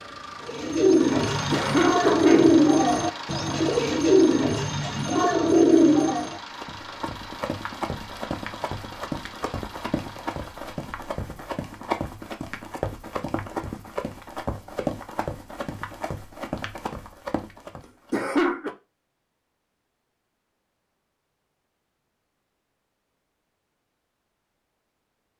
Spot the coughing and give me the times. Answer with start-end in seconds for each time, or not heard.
1.5-2.6, 18.1-18.8.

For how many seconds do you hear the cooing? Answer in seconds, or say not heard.
6 s.